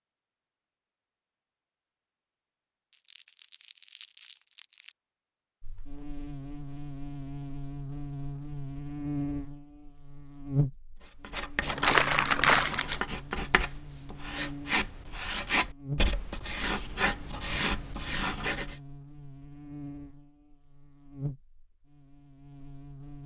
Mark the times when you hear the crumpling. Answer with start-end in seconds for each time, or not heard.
2.9-5.0, 11.7-13.0.